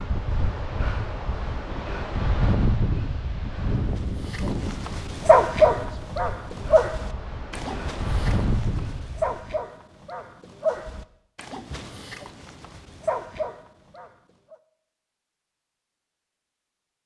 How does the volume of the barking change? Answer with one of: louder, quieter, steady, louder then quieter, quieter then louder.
quieter.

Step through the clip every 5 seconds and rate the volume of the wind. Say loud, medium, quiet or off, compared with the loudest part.
loud, loud, off, off.